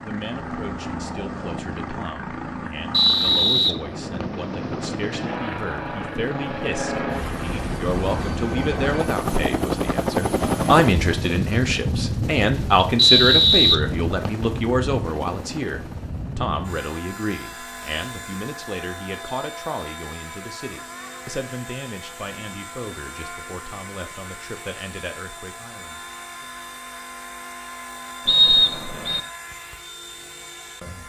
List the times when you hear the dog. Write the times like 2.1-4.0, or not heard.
not heard.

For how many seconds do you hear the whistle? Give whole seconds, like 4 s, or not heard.
4 s.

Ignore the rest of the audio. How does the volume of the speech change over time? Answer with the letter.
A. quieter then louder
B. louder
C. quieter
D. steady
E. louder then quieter
E.